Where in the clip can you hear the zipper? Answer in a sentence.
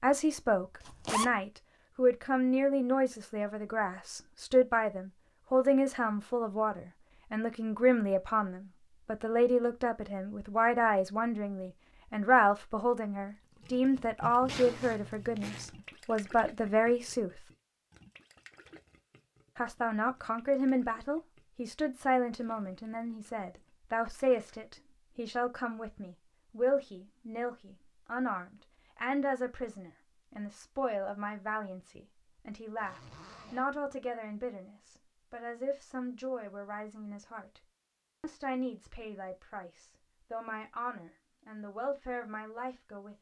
You can hear the zipper from 0.8 to 1.2 s, from 14.4 to 15.7 s and from 32.8 to 33.6 s.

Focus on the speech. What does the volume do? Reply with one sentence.
The loudness of the speech goes down.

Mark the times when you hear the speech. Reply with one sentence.
You can hear the speech from 0.0 to 17.4 s, from 19.6 to 37.6 s and from 38.2 to 43.1 s.